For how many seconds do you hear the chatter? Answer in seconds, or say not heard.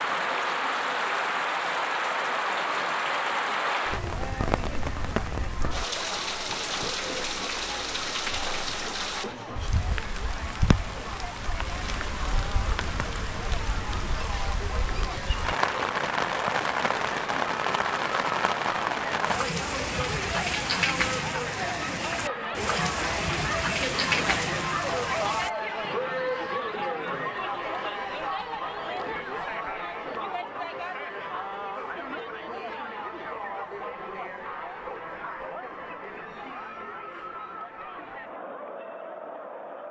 40 s.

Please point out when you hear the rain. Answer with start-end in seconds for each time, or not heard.
0.0-25.5.